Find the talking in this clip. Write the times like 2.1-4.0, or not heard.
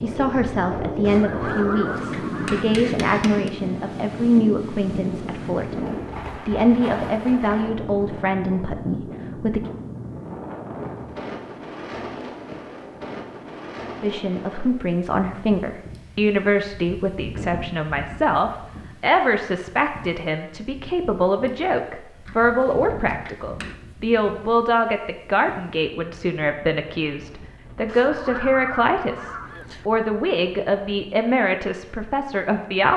0.0-9.6, 14.0-32.9.